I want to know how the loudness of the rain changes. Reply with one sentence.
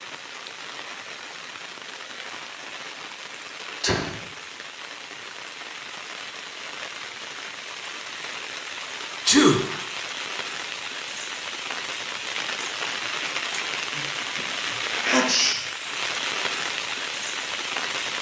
The volume of the rain goes up.